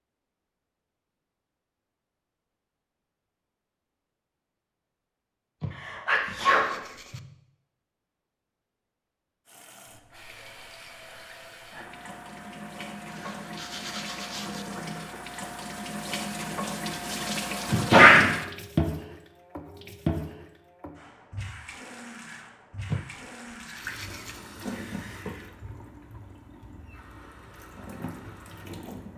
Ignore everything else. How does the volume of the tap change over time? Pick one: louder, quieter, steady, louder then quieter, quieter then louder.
louder then quieter.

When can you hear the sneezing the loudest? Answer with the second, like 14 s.
18 s.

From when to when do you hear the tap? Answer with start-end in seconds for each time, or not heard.
9.4-29.1.